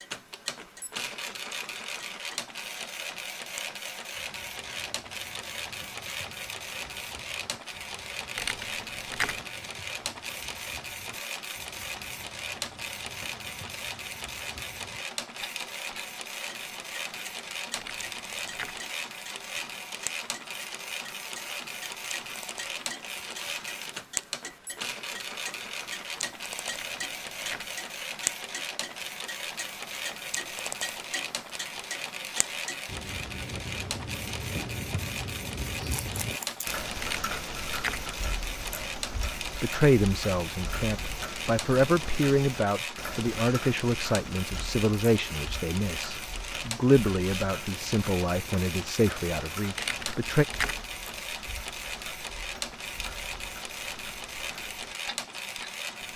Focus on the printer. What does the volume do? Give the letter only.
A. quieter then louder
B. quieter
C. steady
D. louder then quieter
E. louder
C.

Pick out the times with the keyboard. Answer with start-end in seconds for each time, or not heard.
8.3-9.4, 17.8-18.8, 26.6-27.8, 37.0-38.0, 49.8-50.9.